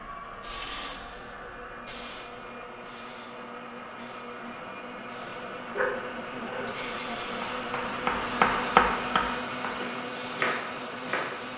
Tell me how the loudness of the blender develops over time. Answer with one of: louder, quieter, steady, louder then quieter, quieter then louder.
louder.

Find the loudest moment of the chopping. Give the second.
9 s.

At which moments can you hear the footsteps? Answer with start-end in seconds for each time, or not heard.
not heard.